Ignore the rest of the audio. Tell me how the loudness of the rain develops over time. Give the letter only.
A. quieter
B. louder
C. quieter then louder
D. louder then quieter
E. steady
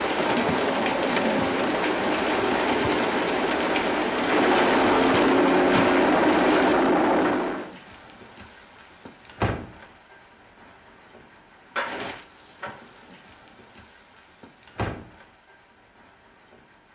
A.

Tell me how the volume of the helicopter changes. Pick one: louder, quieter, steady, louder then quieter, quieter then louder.
louder.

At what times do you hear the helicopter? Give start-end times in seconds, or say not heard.
0.0-7.7.